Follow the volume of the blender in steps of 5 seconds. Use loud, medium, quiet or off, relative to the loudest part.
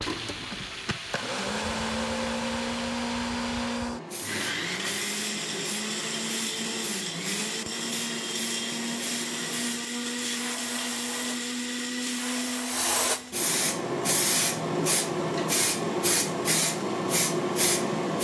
loud, loud, loud, quiet.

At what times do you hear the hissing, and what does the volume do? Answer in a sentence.
The hissing can be heard from 0.0 to 18.2 s, getting louder.